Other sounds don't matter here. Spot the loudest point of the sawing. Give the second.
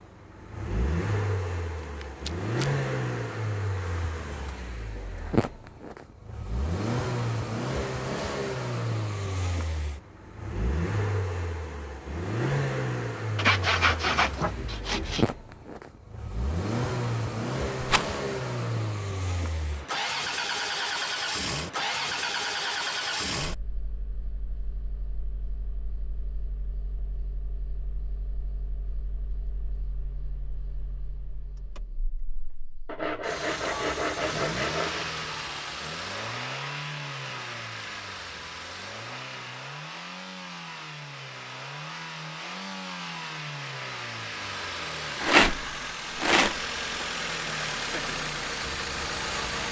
14 s.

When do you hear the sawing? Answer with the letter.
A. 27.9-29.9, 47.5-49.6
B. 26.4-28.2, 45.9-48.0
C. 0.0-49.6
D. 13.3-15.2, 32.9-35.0
D.